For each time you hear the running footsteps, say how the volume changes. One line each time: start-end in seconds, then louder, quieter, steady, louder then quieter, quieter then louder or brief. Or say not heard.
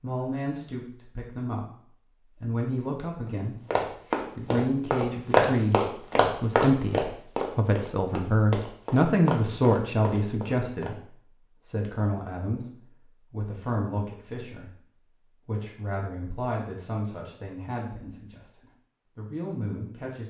3.2-10.9 louder then quieter.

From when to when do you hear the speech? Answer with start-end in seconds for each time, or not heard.
0.0-1.8, 2.4-3.5, 4.3-20.2.